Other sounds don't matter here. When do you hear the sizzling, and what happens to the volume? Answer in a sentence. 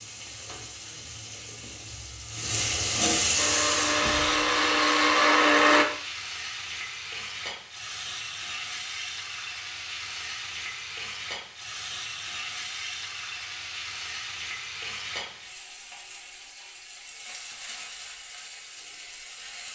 The sizzling can be heard from 0.0 to 19.6 s, getting quieter.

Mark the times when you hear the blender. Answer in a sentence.
You can hear the blender from 3.4 to 5.8 s.